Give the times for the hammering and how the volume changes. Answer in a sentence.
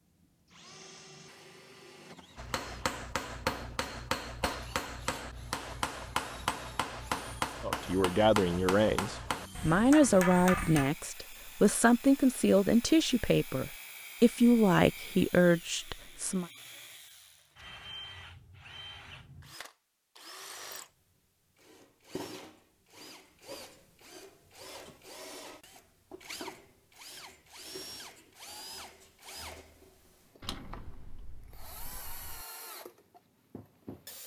The hammering can be heard from 2.4 to 10.9 s, at a steady volume.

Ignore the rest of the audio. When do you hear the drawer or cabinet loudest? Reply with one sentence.
The volume of the drawer or cabinet peaks at 31 seconds.